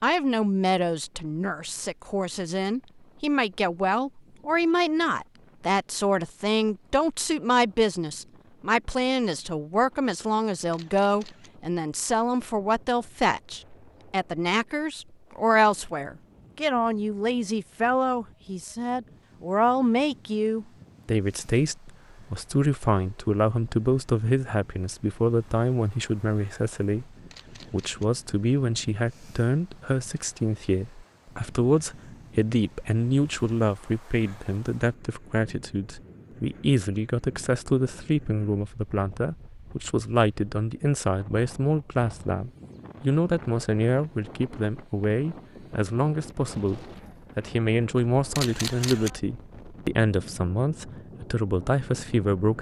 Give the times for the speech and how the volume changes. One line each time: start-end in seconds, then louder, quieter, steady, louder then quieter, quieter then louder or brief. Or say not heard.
0.0-52.5 steady.